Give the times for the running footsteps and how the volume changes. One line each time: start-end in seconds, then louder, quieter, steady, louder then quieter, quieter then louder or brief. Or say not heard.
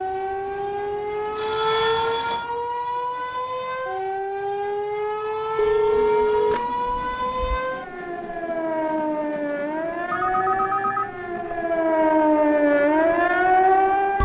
not heard.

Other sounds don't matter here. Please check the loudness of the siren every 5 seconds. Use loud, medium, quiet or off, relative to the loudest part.
medium, medium, loud.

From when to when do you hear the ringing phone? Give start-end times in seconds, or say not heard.
1.4-2.5, 5.5-7.6, 10.1-11.6.